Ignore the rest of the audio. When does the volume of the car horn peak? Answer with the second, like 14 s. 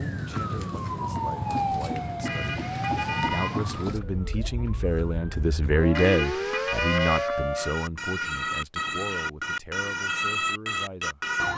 7 s.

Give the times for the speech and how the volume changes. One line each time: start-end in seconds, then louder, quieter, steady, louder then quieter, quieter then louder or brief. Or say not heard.
0.0-11.3 louder then quieter.